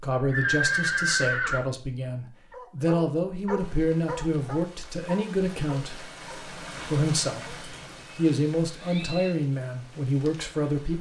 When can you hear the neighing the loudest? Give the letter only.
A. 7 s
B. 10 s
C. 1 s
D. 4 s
C.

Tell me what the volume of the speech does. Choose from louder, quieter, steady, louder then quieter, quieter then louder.
steady.